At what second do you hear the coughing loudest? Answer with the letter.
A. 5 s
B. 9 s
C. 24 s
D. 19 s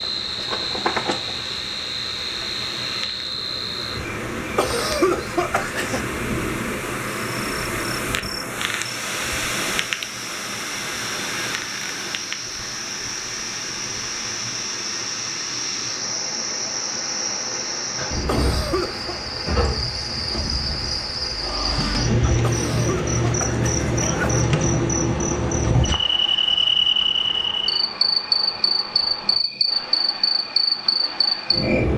A.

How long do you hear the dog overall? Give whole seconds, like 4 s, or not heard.
not heard.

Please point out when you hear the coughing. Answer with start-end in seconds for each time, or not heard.
4.5-6.0, 18.2-19.2, 22.4-24.4.